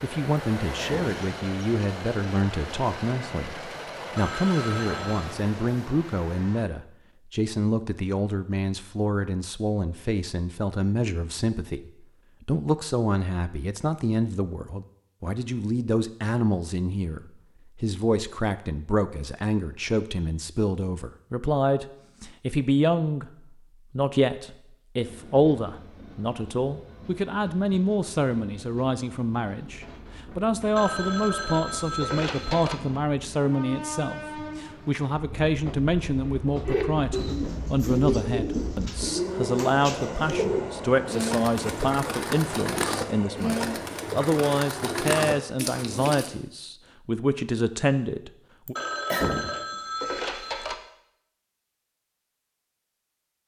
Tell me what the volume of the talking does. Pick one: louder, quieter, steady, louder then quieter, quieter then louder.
steady.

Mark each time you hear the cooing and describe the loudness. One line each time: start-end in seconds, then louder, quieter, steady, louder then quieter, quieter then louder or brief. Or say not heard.
36.6-46.3 steady.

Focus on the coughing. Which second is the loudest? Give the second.
49 s.